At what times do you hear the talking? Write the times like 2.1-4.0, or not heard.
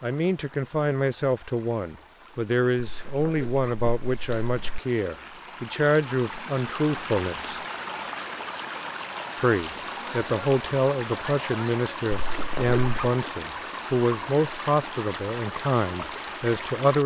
0.0-7.5, 9.3-17.0.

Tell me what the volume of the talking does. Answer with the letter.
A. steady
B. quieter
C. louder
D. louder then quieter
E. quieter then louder
A.